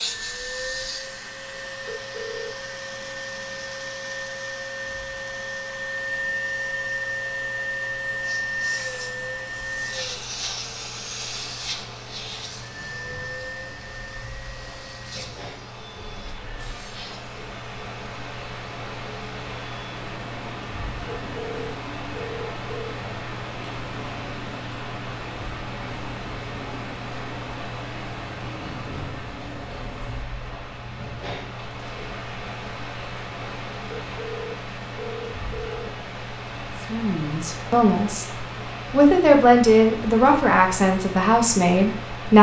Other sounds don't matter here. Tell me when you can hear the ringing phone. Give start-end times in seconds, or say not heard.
1.9-2.5, 21.1-22.9, 33.9-35.9.